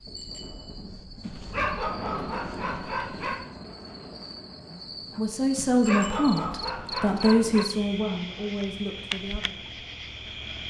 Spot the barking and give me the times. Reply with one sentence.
The barking can be heard from 1.2 to 3.5 s and from 5.5 to 7.7 s.